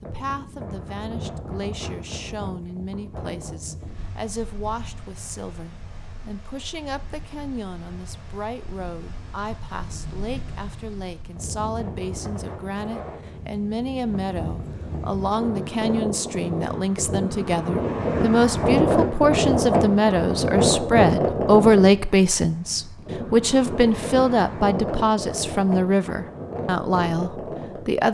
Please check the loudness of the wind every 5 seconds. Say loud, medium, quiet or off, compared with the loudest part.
quiet, quiet, quiet, loud, loud, medium.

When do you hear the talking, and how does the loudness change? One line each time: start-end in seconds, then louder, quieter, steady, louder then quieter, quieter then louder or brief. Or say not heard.
0.0-28.0 louder.